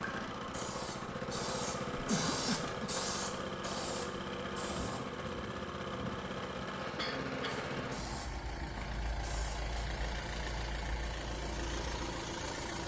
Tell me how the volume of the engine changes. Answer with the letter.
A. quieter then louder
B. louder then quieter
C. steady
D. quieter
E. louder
C.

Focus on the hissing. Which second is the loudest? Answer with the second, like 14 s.
3 s.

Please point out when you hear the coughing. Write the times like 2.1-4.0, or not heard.
2.0-2.9, 7.0-7.7.